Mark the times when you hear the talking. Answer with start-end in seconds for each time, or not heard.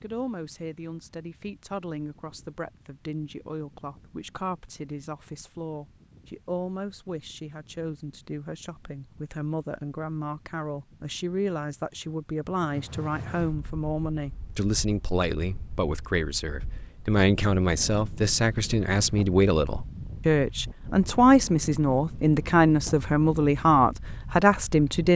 0.0-25.1.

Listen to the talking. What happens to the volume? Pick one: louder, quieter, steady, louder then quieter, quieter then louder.
louder.